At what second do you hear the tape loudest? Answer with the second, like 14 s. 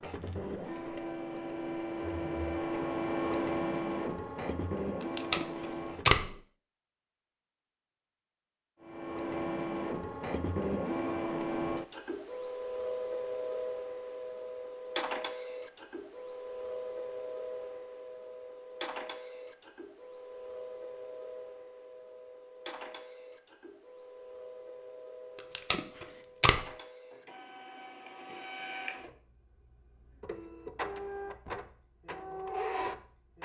6 s.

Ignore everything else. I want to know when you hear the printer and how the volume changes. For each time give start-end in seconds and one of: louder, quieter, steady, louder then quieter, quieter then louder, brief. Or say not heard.
0.0-6.4 louder then quieter
8.8-33.4 quieter then louder.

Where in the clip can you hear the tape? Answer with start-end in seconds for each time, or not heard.
5.0-6.3, 25.4-26.6.